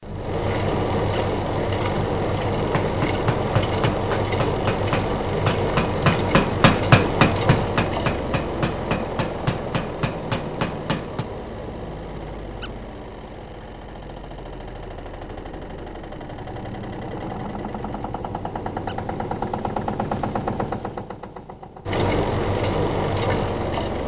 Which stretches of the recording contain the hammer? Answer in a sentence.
You can hear the hammer from 2.7 to 11.2 s.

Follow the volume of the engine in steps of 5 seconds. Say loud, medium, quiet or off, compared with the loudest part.
loud, loud, medium, medium, loud.